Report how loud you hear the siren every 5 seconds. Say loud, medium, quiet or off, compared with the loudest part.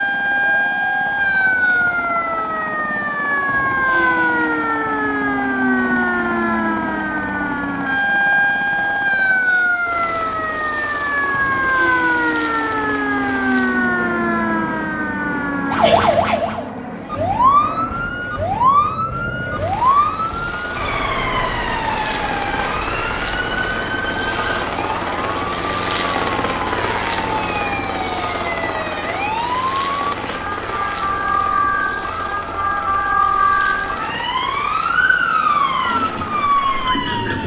loud, loud, loud, loud, medium, medium, loud, loud.